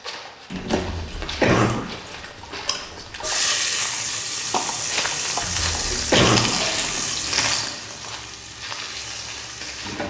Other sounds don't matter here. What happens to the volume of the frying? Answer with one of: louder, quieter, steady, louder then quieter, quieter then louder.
quieter.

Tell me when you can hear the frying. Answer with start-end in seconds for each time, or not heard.
3.2-10.0.